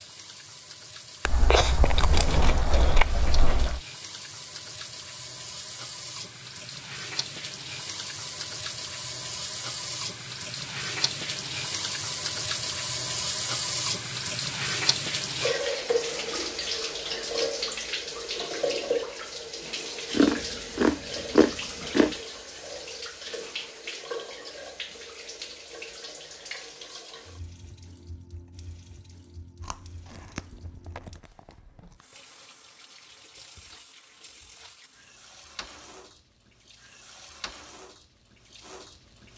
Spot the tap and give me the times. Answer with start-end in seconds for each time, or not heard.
0.0-39.3.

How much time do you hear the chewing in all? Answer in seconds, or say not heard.
6 s.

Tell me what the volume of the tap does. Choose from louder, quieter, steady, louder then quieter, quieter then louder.
louder then quieter.